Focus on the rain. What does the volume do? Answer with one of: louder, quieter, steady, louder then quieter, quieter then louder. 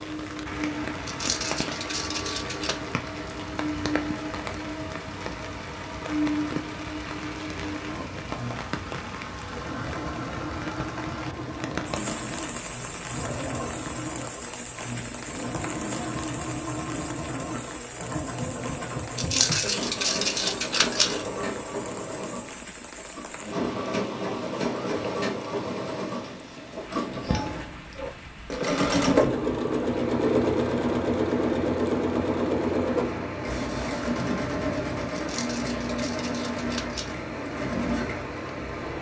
quieter.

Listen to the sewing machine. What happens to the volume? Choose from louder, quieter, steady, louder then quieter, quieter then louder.
louder.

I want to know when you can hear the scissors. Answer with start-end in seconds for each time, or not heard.
1.1-2.8, 19.1-21.3, 35.1-37.2.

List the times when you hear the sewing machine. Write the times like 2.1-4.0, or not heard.
0.0-38.9.